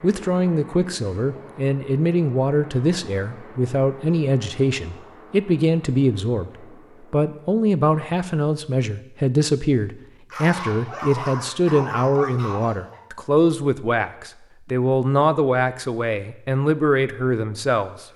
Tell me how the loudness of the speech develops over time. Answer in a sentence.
The volume of the speech stays about the same.